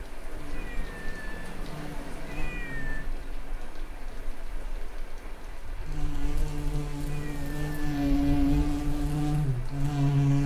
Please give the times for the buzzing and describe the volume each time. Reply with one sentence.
You can hear the buzzing from 0.0 to 10.4 s, getting louder.